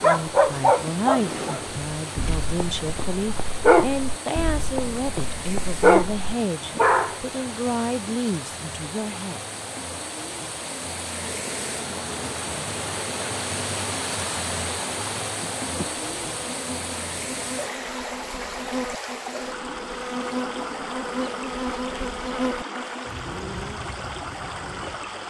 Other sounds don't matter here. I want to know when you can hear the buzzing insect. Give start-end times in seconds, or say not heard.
0.2-2.4, 11.2-25.2.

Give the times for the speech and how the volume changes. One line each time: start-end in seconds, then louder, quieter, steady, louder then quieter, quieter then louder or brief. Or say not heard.
0.0-9.4 steady.